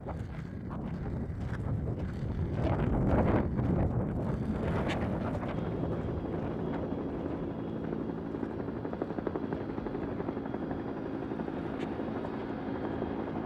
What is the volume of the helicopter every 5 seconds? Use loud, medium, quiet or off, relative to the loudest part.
off, loud, loud.